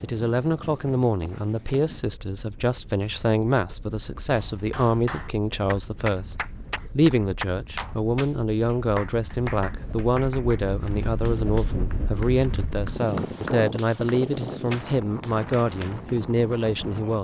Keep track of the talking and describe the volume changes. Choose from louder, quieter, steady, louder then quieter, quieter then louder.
steady.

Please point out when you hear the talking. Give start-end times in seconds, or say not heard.
0.0-17.2.